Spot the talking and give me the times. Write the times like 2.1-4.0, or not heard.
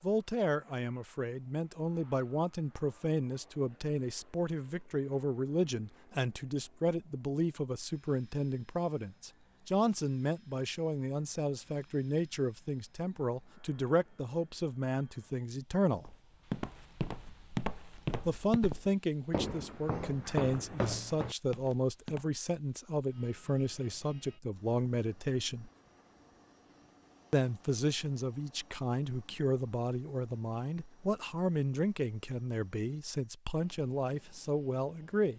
0.0-16.1, 18.2-25.7, 27.3-35.3.